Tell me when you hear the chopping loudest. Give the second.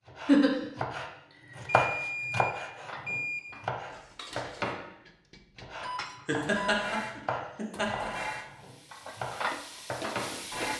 2 s.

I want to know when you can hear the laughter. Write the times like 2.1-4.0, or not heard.
0.2-0.7, 6.2-8.1.